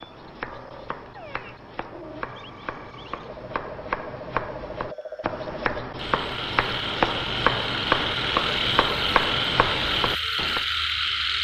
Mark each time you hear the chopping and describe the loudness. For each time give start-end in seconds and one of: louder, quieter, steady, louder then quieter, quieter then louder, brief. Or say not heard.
0.0-10.7 louder.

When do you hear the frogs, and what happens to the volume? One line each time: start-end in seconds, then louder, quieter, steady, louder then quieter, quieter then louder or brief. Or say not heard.
0.0-11.3 louder.